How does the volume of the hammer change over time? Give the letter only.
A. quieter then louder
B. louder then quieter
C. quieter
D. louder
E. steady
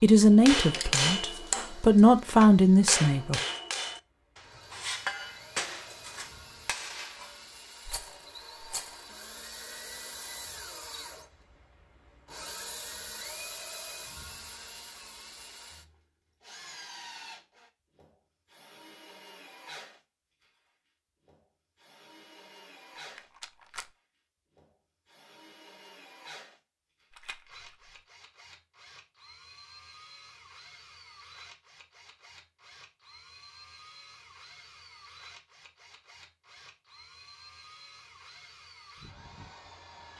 C.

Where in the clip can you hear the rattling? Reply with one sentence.
You can hear the rattling from 7.8 to 9.1 s, from 23.1 to 23.9 s and from 27.1 to 27.8 s.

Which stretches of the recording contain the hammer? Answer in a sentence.
You can hear the hammer from 0.3 to 7.5 s.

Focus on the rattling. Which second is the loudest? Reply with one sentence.
The volume of the rattling peaks at 9 seconds.